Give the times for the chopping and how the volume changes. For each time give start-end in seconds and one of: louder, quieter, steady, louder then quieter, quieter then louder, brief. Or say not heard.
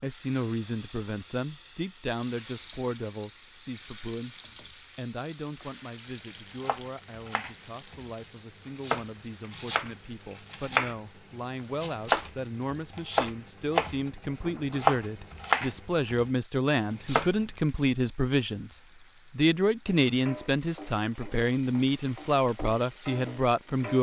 6.5-16.3 louder
16.9-17.9 brief.